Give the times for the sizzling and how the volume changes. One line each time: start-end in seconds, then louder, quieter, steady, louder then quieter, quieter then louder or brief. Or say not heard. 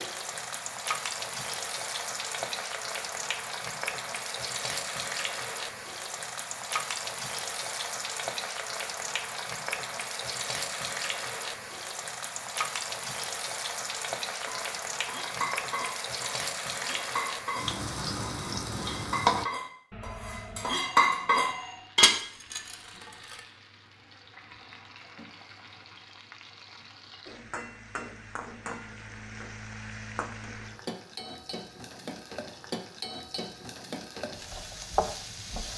0.0-19.4 steady
21.4-35.7 louder.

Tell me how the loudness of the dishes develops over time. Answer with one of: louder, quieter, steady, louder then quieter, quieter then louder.
louder.